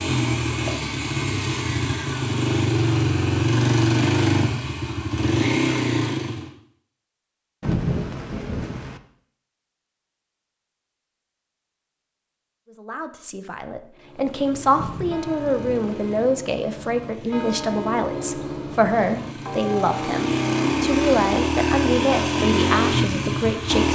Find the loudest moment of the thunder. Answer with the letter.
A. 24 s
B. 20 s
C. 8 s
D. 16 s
C.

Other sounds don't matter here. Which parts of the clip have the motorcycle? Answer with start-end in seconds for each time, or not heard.
0.0-6.5, 14.3-23.9.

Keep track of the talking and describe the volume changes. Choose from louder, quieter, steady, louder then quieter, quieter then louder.
steady.